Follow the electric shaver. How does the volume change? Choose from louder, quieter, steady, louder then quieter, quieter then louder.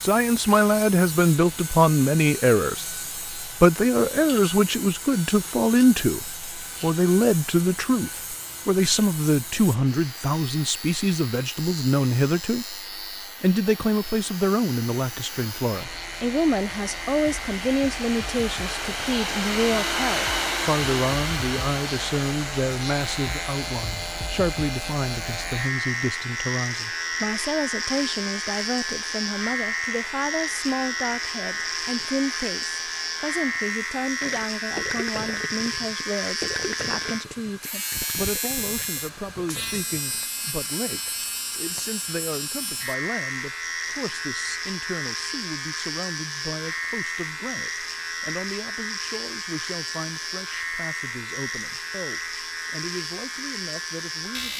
louder.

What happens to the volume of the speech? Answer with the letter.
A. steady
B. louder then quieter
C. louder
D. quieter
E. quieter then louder
D.